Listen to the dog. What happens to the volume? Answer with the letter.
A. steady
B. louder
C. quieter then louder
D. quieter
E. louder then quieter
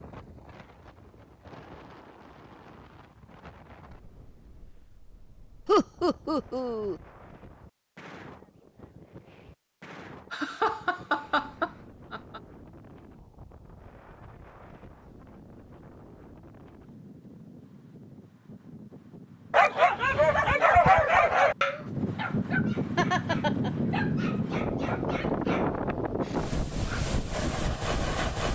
D.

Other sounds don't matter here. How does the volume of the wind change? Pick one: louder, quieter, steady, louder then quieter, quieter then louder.
louder.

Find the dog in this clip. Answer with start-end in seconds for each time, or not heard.
19.5-25.7.